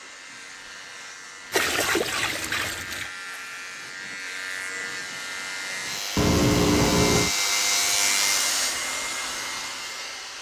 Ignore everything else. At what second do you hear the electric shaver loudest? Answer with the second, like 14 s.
8 s.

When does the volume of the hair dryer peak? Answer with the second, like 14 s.
8 s.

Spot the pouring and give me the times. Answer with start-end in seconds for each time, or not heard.
1.5-3.1, 6.2-7.3.